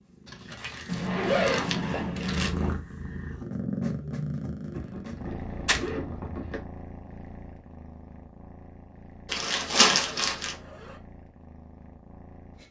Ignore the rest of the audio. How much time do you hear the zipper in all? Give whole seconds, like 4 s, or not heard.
5 s.